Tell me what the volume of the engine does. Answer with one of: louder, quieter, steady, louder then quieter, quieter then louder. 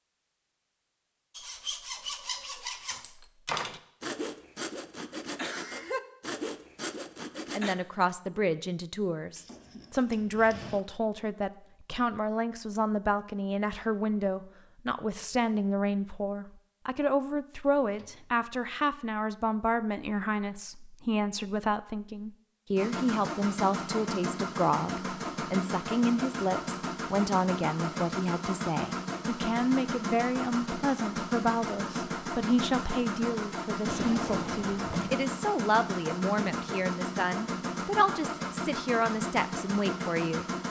steady.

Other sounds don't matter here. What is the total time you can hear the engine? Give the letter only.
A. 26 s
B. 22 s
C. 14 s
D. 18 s
D.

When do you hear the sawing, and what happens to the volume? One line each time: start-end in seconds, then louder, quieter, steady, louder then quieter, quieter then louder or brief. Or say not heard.
1.4-7.8 steady.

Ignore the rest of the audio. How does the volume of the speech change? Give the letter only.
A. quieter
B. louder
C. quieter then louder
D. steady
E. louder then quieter
D.